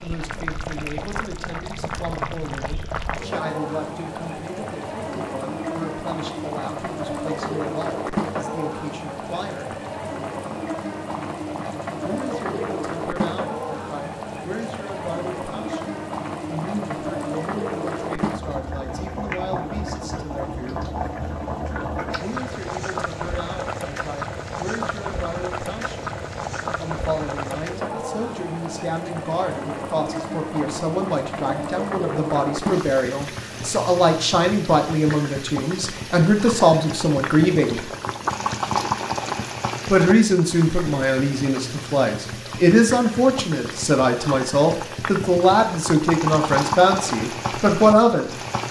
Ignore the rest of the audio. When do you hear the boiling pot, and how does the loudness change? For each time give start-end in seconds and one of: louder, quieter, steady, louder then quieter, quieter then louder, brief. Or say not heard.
0.0-48.6 steady.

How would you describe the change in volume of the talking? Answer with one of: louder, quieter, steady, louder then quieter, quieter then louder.
louder.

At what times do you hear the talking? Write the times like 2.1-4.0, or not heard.
0.0-9.8, 12.0-20.9, 22.2-26.1, 26.8-37.9, 39.9-48.4.